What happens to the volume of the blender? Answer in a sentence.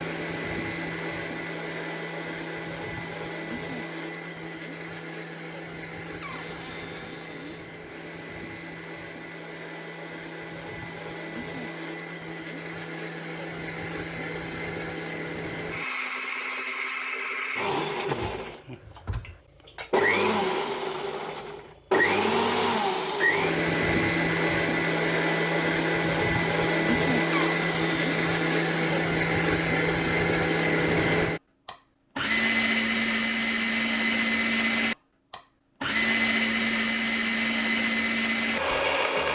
The volume of the blender goes up.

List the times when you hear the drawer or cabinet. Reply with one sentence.
The drawer or cabinet can be heard from 6.2 to 7.7 s, from 18.1 to 19.4 s and from 27.3 to 29.1 s.